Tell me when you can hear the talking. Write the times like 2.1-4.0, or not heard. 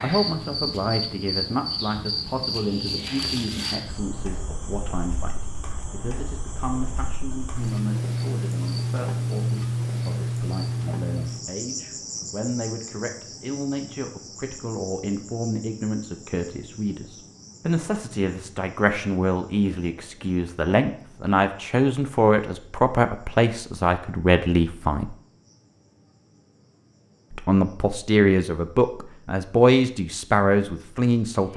0.0-25.1, 27.3-31.5.